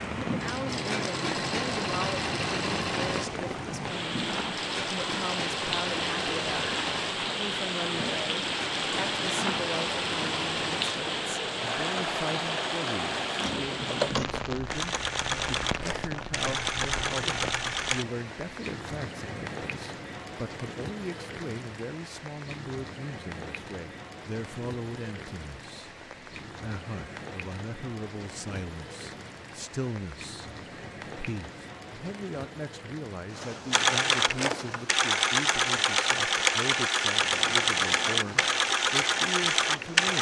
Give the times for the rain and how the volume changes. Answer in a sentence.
The rain can be heard from 0.0 to 40.1 s, getting quieter.